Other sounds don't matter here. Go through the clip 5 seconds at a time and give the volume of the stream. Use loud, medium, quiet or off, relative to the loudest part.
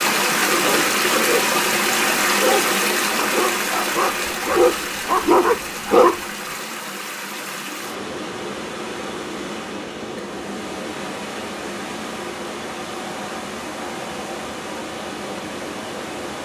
loud, medium, medium, medium.